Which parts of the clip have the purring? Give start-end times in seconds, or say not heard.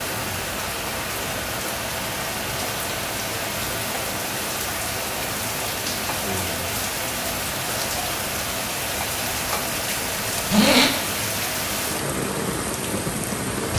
not heard.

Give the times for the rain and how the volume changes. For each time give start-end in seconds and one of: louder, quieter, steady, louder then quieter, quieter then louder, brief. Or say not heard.
0.0-13.7 steady.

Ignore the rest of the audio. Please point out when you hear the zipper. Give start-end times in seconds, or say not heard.
10.1-10.9.